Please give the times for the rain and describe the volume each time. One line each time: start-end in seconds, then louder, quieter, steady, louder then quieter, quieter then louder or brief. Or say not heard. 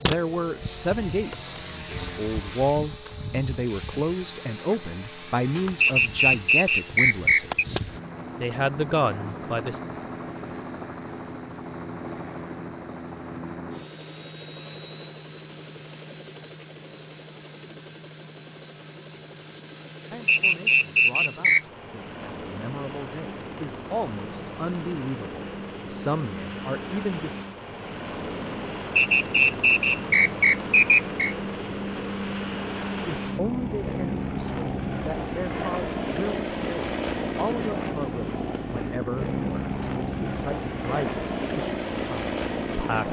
not heard.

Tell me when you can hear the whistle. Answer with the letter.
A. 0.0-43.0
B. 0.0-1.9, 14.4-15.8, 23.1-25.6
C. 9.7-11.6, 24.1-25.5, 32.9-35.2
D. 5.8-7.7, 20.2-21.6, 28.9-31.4
D.